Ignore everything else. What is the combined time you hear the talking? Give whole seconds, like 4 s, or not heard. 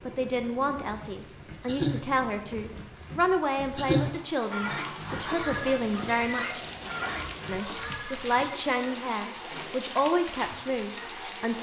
11 s.